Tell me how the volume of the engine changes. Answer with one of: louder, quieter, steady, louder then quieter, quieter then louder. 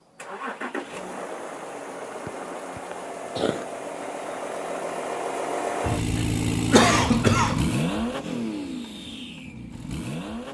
louder then quieter.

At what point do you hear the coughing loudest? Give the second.
7 s.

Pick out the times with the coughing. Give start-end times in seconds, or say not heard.
2.2-3.6, 5.8-7.7.